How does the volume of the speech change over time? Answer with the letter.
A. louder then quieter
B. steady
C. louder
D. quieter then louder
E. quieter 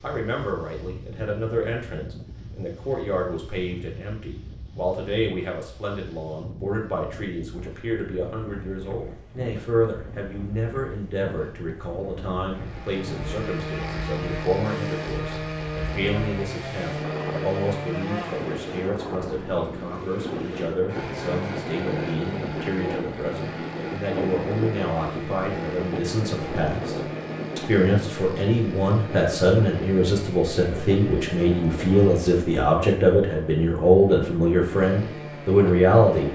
C.